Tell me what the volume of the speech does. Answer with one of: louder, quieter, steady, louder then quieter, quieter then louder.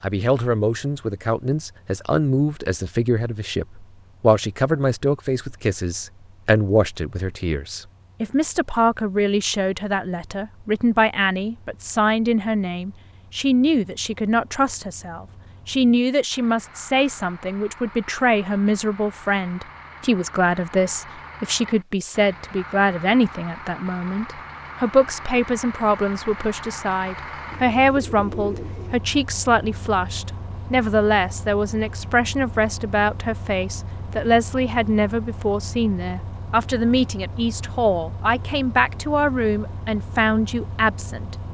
steady.